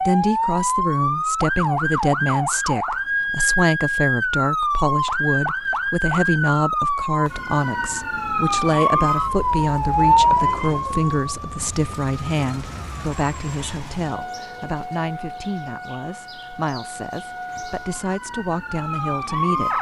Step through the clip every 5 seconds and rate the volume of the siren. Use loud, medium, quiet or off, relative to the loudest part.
loud, loud, loud, medium.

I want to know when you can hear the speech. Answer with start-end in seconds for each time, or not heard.
0.1-19.7.